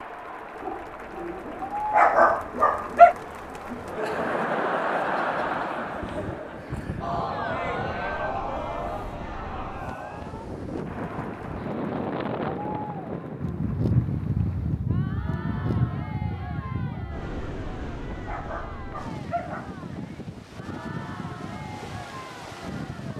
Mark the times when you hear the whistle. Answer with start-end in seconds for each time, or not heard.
not heard.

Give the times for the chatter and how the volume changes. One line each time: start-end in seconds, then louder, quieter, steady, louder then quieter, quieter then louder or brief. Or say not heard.
0.0-23.1 quieter.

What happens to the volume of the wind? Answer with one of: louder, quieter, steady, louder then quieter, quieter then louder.
louder then quieter.